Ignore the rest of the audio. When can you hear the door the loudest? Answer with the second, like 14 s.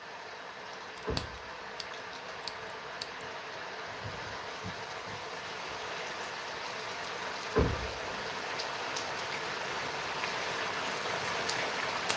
8 s.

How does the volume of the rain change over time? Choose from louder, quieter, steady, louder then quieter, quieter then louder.
louder.